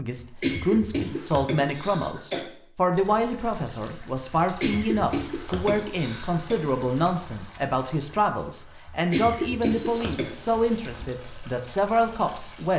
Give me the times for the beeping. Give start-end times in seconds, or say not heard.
9.6-11.1.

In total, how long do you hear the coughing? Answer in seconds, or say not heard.
6 s.